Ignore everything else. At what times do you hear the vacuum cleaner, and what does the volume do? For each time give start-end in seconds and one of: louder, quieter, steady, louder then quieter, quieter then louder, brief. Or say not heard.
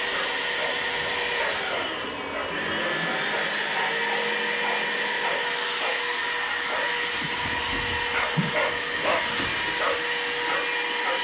0.0-11.1 steady.